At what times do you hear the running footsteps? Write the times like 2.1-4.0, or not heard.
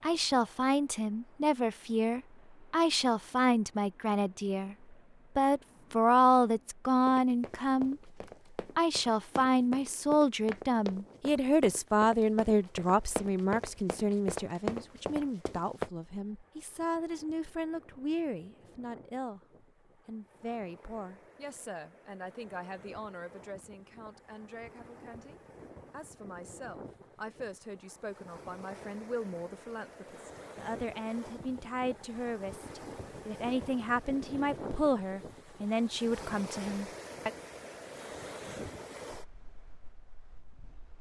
7.0-15.9.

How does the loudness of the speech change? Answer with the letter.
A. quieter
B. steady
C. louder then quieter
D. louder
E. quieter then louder
E.